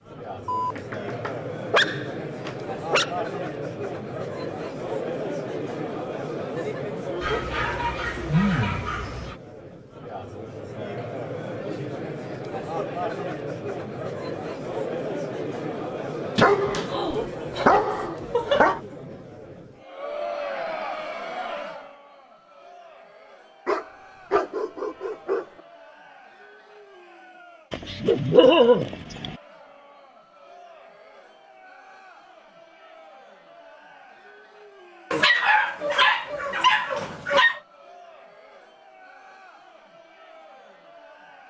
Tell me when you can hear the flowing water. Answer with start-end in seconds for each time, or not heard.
not heard.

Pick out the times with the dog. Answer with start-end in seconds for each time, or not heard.
0.5-3.1, 7.2-9.3, 16.4-18.8, 23.6-25.4, 27.7-29.4, 35.1-37.6.